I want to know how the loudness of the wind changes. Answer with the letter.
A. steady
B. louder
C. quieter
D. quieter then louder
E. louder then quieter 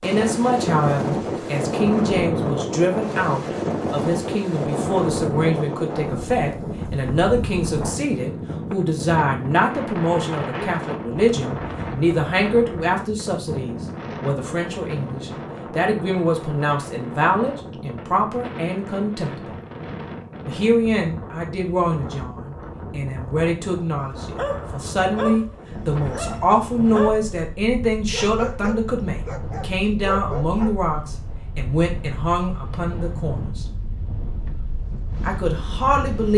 C.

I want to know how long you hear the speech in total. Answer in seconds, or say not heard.
34 s.